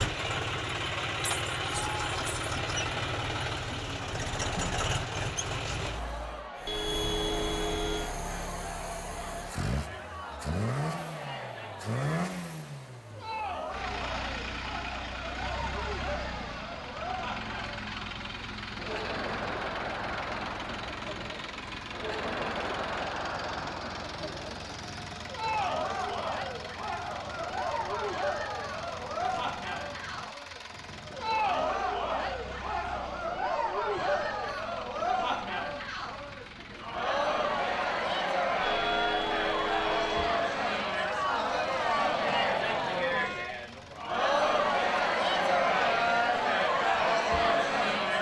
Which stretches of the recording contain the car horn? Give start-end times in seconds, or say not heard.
6.7-8.1, 38.6-40.3.